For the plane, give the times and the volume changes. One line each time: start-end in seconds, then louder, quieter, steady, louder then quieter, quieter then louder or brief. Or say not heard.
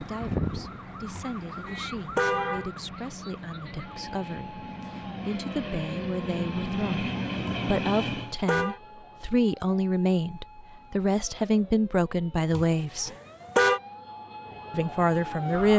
0.0-8.3 louder.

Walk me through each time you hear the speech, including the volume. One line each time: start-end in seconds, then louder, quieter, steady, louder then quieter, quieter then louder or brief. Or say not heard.
0.0-13.1 louder
14.7-15.7 brief.